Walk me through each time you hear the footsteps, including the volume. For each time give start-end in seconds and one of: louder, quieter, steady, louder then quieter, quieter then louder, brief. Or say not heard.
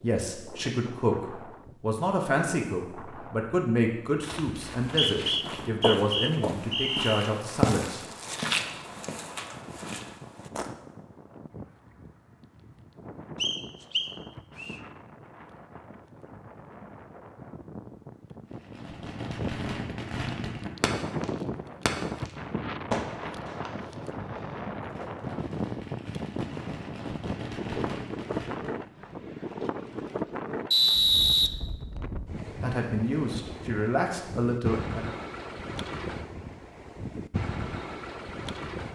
4.2-10.7 louder then quieter.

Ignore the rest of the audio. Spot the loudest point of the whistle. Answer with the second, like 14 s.
31 s.